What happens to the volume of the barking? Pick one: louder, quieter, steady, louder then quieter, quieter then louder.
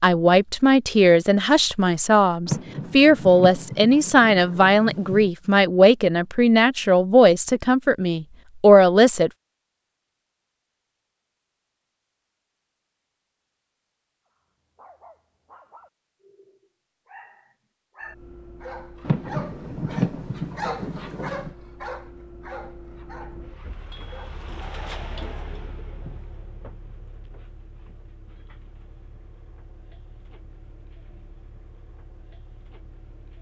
louder then quieter.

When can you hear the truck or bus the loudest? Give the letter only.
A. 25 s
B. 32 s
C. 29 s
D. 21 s
A.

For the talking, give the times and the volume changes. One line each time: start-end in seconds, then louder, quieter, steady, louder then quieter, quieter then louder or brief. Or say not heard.
0.0-9.3 steady.